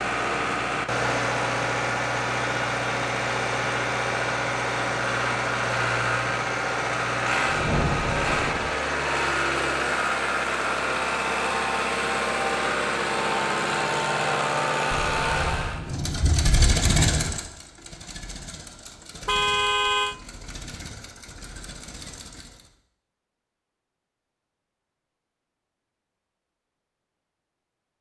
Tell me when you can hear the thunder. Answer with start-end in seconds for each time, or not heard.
7.5-8.7, 14.9-17.4.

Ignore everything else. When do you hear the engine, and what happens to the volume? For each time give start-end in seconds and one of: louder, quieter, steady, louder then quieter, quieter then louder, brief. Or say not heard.
0.0-22.8 quieter.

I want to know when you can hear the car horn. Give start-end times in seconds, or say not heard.
19.2-20.1.